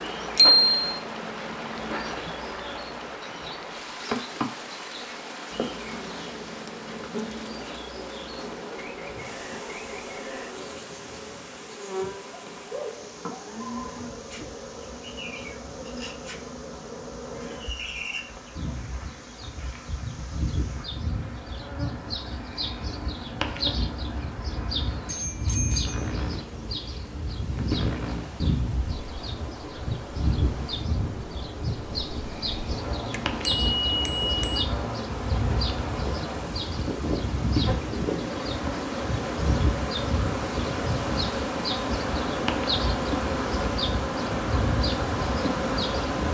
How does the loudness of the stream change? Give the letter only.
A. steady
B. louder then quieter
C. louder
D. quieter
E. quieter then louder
E.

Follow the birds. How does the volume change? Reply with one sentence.
The volume of the birds goes up.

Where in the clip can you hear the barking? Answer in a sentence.
You can't hear the barking here.